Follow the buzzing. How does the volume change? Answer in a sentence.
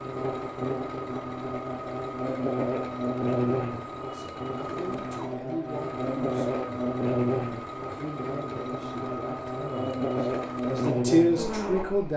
The loudness of the buzzing stays about the same.